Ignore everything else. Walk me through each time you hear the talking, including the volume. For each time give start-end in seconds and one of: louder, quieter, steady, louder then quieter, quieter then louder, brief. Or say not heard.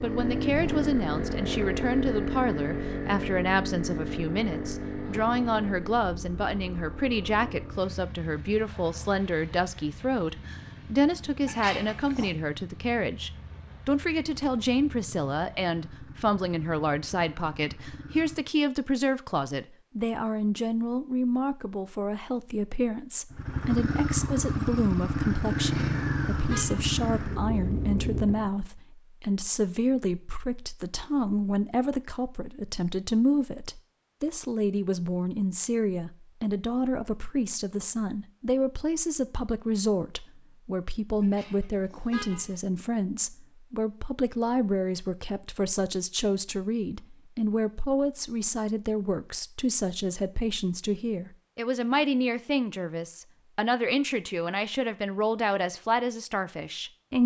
0.0-57.2 steady.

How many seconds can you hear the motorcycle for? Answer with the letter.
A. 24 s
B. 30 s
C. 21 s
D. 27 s
A.